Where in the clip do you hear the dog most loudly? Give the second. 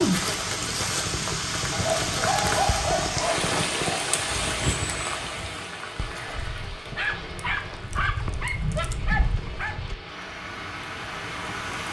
3 s.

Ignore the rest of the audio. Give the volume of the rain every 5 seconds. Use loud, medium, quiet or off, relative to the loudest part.
loud, medium, medium.